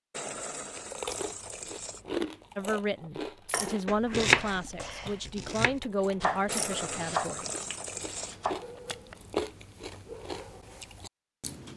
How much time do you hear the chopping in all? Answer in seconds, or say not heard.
6 s.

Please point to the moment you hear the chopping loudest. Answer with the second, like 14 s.
4 s.